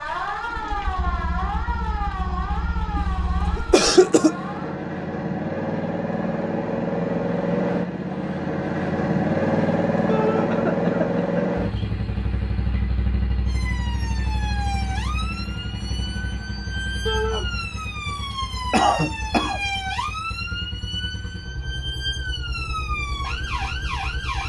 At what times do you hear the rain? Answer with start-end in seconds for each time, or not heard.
not heard.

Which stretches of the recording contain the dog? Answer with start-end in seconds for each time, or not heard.
not heard.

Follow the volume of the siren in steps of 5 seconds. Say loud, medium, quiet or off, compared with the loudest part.
loud, off, loud, loud, loud.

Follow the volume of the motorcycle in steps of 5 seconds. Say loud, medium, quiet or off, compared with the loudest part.
medium, loud, loud, quiet, quiet.